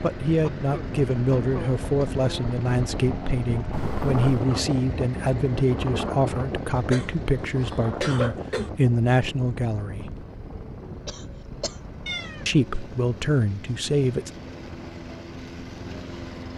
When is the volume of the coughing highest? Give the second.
8 s.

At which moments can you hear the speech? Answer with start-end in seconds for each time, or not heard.
0.0-10.2, 12.4-14.3.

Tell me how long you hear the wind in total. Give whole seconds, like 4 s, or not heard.
16 s.